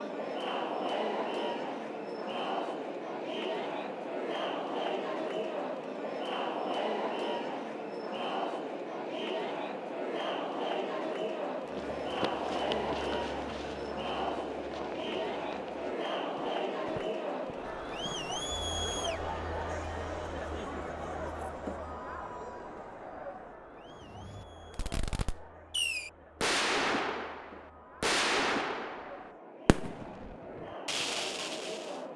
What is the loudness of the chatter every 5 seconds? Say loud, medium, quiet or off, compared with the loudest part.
loud, loud, loud, loud, medium, quiet, medium.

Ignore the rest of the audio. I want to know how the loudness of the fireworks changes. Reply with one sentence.
The volume of the fireworks goes up, then down.